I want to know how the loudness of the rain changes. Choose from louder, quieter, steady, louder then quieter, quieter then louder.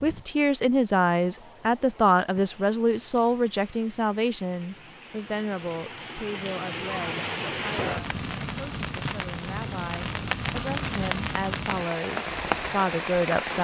louder.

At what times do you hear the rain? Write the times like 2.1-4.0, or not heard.
0.0-13.5.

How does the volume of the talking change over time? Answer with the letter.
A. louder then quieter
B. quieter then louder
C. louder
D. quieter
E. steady
B.